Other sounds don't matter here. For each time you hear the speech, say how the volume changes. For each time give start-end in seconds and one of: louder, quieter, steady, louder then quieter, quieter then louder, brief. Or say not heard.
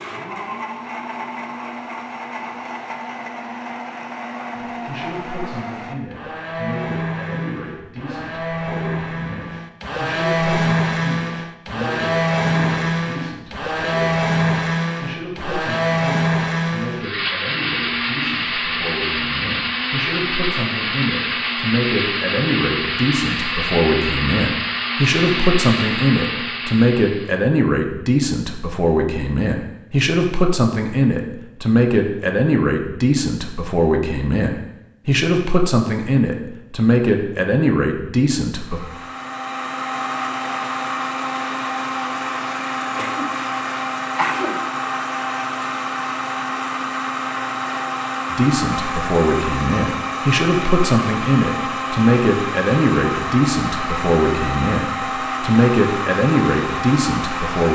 4.5-38.8 louder
48.3-57.7 steady.